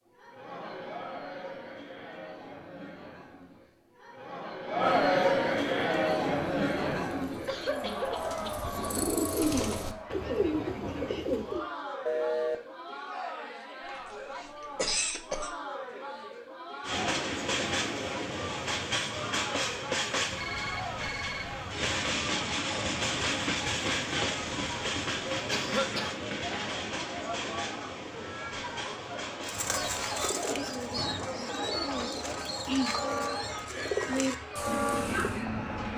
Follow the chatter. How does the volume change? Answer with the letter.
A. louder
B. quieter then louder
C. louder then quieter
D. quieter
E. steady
D.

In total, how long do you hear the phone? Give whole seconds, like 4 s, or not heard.
2 s.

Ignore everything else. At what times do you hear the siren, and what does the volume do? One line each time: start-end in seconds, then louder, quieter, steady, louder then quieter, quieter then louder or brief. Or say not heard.
not heard.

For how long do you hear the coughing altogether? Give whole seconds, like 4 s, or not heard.
4 s.